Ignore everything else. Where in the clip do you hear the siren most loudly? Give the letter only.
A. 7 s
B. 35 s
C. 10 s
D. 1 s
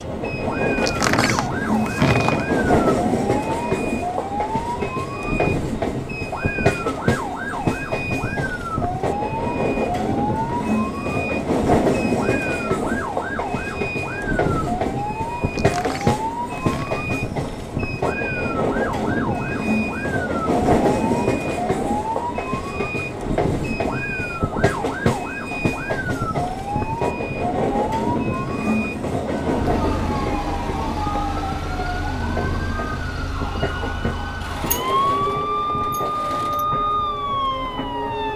B.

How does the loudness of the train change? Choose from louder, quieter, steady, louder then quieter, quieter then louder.
quieter.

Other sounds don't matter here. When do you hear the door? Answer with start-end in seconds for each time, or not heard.
0.8-2.5, 15.4-17.1, 34.4-36.6.